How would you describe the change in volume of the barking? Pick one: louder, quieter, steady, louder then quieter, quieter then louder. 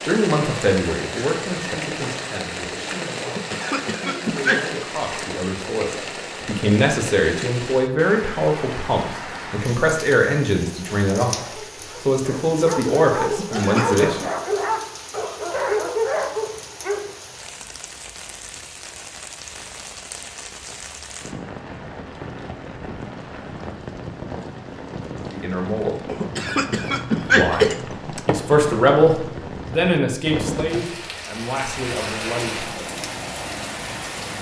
louder.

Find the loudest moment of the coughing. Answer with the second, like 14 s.
27 s.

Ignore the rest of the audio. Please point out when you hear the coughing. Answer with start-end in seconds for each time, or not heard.
3.2-4.8, 13.2-14.0, 26.1-28.4.